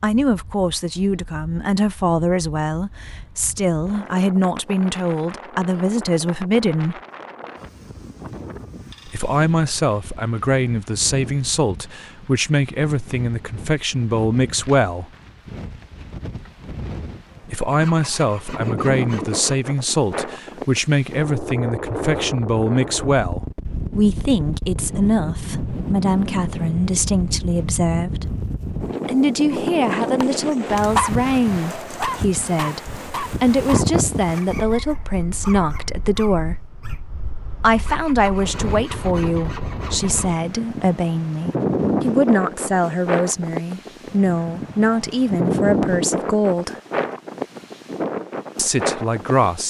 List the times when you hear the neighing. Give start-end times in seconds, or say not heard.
not heard.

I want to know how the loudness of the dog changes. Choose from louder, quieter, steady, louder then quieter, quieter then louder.
quieter.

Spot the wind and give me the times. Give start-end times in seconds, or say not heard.
0.0-49.6.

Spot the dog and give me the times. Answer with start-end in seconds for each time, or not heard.
29.5-37.0.